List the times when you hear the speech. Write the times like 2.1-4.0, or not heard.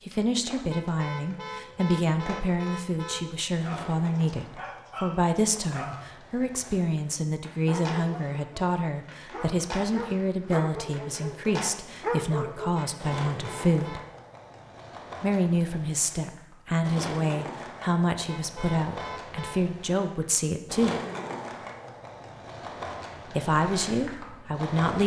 0.1-14.0, 15.2-21.0, 23.3-25.0.